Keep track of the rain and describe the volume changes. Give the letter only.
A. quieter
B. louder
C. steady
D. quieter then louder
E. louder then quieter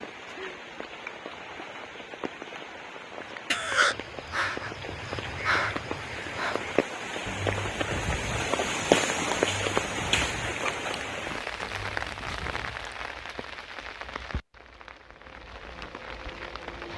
E.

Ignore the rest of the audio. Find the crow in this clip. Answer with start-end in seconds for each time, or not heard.
3.5-12.9.